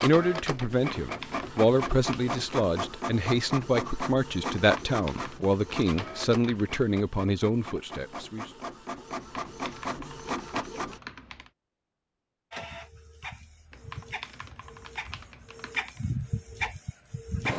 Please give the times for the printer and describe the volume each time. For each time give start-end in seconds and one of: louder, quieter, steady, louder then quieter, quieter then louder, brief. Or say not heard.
0.0-11.0 quieter then louder
12.5-17.5 louder.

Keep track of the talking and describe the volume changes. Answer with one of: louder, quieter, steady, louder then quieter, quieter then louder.
steady.